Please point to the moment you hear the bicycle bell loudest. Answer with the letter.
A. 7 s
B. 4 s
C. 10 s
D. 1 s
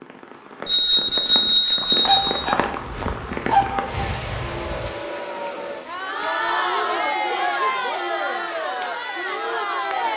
D.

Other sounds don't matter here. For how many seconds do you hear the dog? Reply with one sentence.
You can hear the dog for 3 seconds altogether.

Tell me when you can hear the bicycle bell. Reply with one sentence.
The bicycle bell can be heard from 0.7 to 2.5 s and from 6.2 to 6.8 s.